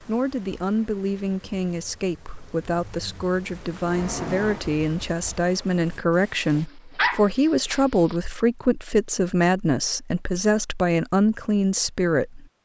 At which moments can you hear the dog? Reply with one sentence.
The dog can be heard from 6.5 to 8.2 s.